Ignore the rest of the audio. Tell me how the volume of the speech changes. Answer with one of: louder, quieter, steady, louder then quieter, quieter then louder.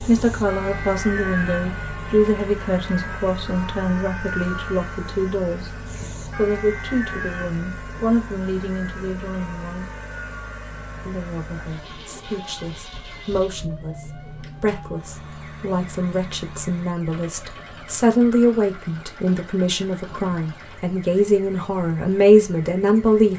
quieter then louder.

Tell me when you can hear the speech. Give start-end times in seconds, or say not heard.
0.0-5.8, 6.3-9.9, 11.1-23.3.